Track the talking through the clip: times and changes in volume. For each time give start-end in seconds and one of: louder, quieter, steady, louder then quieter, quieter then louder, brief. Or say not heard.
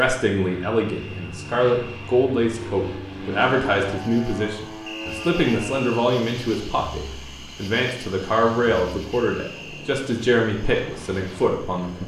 0.0-12.0 steady.